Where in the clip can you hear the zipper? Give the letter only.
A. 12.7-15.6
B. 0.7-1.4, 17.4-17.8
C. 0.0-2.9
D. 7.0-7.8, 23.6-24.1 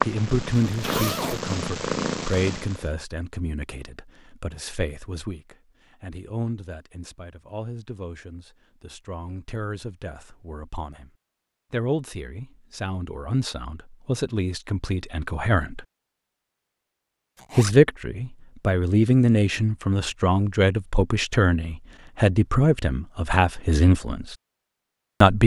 B.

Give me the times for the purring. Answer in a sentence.
The purring can be heard from 0.0 to 2.9 s.